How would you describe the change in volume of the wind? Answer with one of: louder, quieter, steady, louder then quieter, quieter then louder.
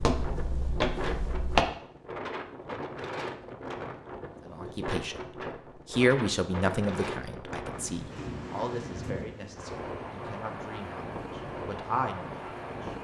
steady.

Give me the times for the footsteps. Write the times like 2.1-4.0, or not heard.
0.0-1.6.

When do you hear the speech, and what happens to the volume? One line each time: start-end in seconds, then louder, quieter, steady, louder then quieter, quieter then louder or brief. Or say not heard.
4.5-5.3 brief
5.9-12.9 quieter then louder.